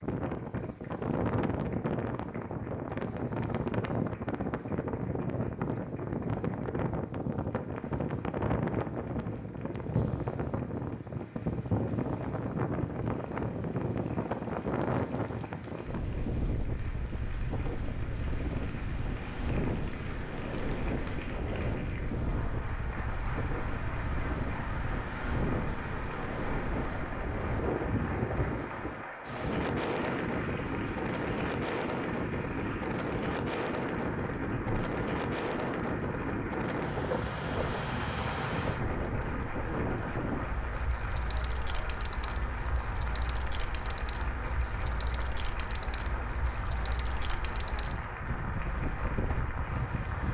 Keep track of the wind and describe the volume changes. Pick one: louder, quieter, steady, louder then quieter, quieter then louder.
quieter.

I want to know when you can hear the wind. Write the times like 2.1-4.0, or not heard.
0.0-50.2.